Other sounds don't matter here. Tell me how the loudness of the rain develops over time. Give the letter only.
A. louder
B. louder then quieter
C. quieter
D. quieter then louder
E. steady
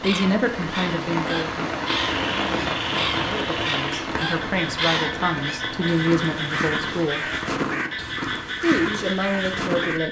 C.